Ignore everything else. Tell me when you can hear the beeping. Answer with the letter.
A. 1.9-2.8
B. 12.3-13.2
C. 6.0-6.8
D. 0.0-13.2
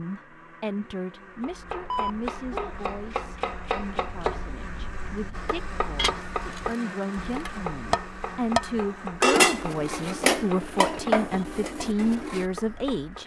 A.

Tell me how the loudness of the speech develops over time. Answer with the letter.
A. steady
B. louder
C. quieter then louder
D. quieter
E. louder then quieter
C.